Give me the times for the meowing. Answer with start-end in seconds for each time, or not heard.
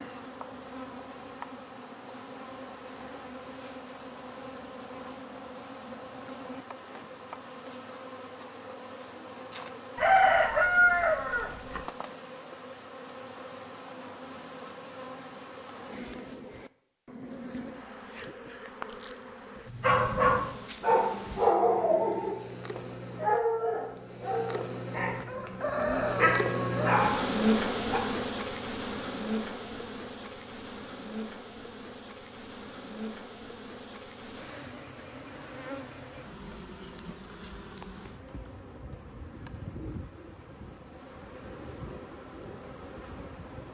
not heard.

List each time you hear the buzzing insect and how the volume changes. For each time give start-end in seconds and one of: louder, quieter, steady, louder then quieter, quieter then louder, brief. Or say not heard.
0.0-43.6 louder then quieter.